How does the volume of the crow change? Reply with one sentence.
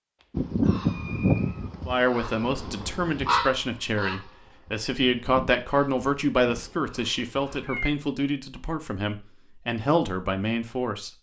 The loudness of the crow goes down.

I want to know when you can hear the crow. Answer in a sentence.
You can hear the crow from 0.3 to 7.7 s.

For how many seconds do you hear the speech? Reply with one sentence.
The speech can be heard for 9 seconds in total.